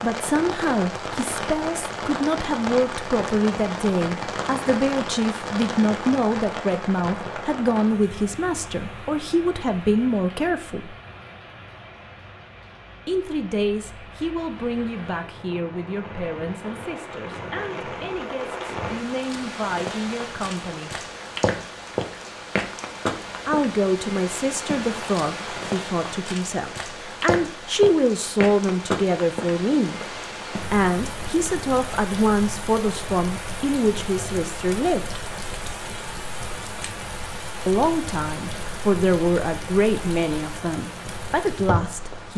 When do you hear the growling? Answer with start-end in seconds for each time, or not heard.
not heard.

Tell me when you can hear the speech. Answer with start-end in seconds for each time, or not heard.
0.0-10.9, 13.1-20.9, 23.4-29.9, 30.7-35.2, 37.6-42.3.